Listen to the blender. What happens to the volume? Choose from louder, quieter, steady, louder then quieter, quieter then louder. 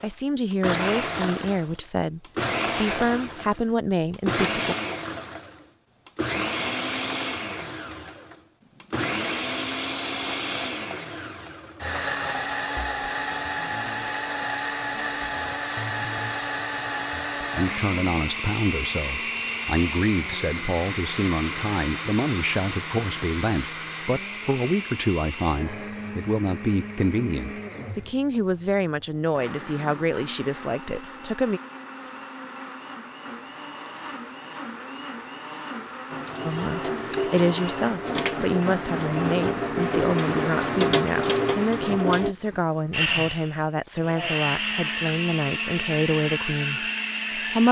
quieter then louder.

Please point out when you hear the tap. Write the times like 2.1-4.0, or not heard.
36.1-42.4.